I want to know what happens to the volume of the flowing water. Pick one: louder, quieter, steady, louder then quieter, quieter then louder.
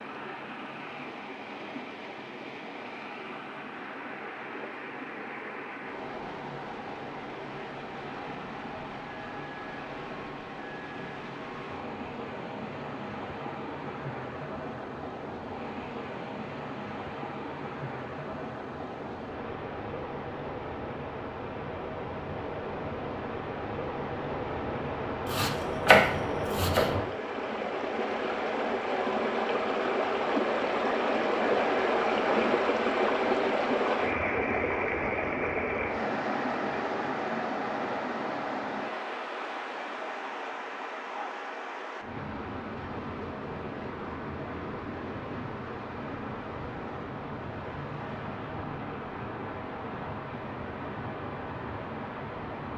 louder then quieter.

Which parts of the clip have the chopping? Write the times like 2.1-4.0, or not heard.
25.2-26.9.